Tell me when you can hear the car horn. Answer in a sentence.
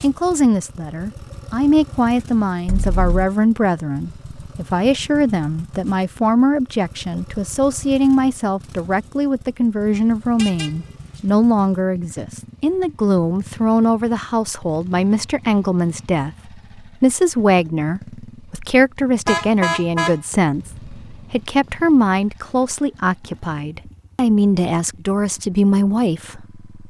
The car horn can be heard from 2.6 to 3.3 s, from 10.3 to 11.2 s and from 19.2 to 21.2 s.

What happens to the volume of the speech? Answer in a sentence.
The loudness of the speech stays about the same.